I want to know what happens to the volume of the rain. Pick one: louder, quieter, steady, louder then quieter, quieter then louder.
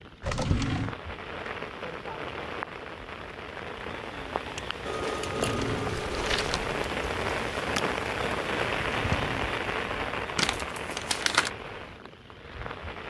louder then quieter.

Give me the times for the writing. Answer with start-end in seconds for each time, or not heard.
not heard.